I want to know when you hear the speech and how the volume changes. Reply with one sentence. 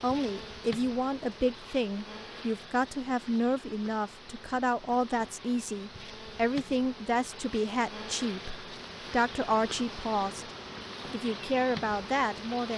The speech can be heard from 0.0 to 10.4 s, at a steady volume; and briefly from 11.1 to 12.7 s.